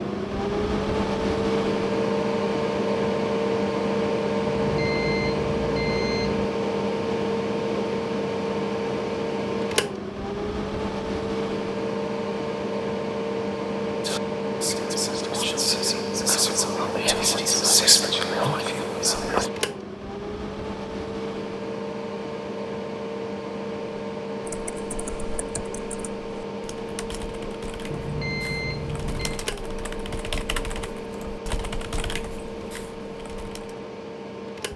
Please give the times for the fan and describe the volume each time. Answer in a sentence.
You can hear the fan from 0.0 to 34.7 s, getting quieter.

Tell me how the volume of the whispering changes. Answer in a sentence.
The loudness of the whispering goes up, then down.